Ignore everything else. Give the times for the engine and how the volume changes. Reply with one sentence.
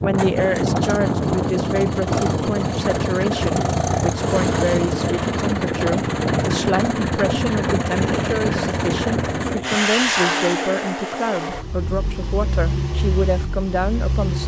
You can hear the engine from 0.0 to 14.4 s, getting quieter.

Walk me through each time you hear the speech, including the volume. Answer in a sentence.
The speech can be heard from 0.0 to 14.4 s, at a steady volume.